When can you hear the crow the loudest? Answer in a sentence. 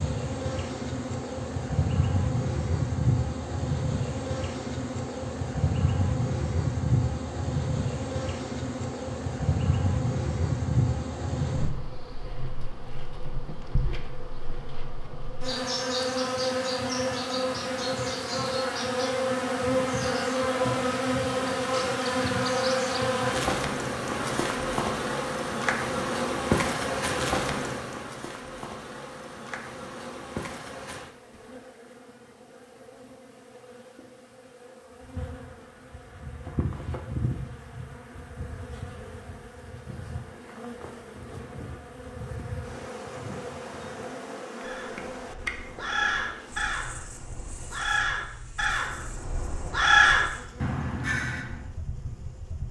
The loudest moment of the crow is at 50 seconds.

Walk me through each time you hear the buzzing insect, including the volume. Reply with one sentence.
The buzzing insect can be heard from 0.0 to 52.6 s, getting quieter.